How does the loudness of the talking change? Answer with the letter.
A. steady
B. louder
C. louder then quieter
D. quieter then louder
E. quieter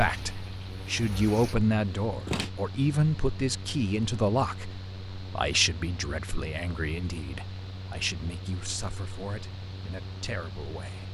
E.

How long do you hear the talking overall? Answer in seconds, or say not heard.
11 s.